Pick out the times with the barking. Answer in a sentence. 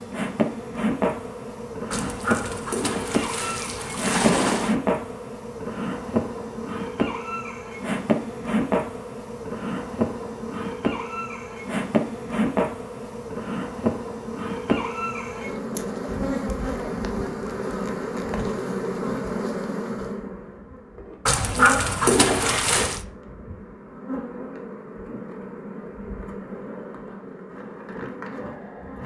You can hear the barking from 1.9 to 4.8 s and from 21.2 to 23.0 s.